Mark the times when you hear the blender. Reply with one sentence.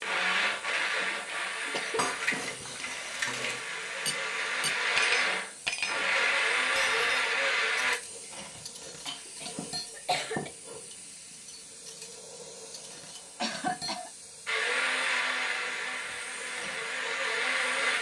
The blender can be heard from 0.0 to 8.0 s and from 14.4 to 17.9 s.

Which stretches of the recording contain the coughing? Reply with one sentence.
The coughing can be heard from 0.9 to 3.2 s, from 8.5 to 10.5 s and from 13.3 to 14.1 s.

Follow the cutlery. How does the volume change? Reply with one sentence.
The loudness of the cutlery goes down.